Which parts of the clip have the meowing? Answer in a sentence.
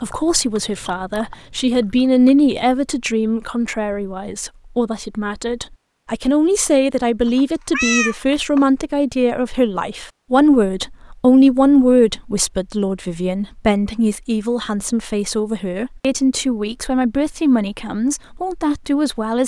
The meowing can be heard from 7.2 to 8.7 s.